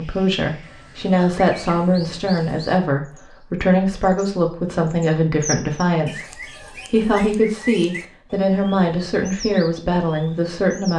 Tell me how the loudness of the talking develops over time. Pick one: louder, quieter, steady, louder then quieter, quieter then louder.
steady.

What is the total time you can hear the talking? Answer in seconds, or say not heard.
11 s.